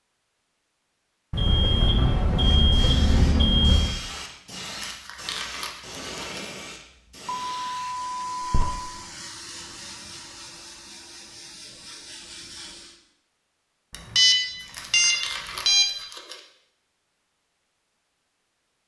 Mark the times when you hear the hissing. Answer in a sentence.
The hissing can be heard from 2.4 to 12.9 s.